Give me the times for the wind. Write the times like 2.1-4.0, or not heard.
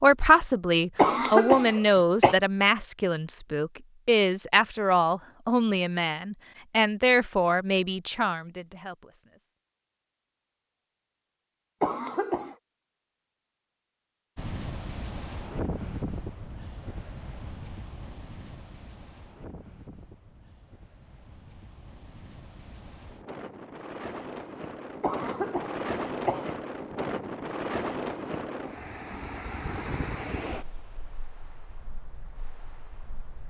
14.3-33.4.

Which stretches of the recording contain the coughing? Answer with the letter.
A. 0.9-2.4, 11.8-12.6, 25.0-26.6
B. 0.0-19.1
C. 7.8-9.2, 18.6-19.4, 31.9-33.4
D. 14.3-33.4
A.